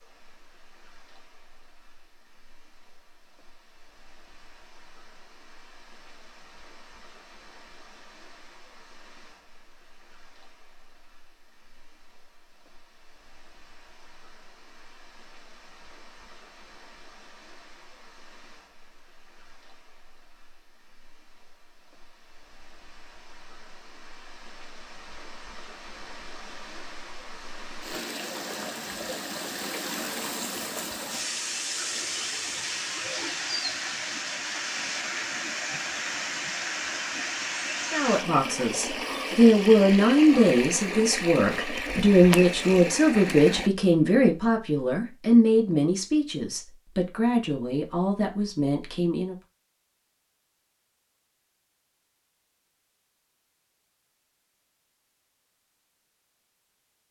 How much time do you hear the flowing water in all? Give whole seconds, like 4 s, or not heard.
44 s.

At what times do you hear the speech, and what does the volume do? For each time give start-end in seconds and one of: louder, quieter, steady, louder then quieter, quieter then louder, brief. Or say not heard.
37.9-49.4 quieter.